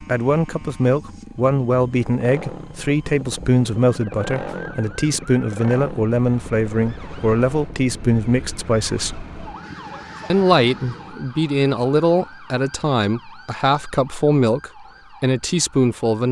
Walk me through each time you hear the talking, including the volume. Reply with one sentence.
The talking can be heard from 0.0 to 9.2 s, at a steady volume; and from 10.3 to 16.2 s, at a steady volume.